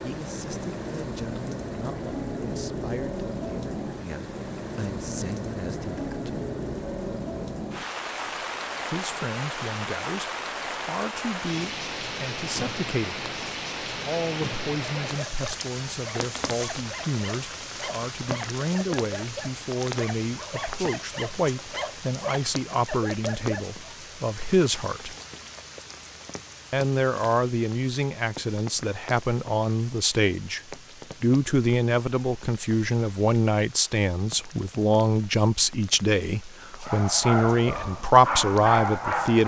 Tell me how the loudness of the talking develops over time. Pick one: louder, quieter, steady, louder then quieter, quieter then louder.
louder.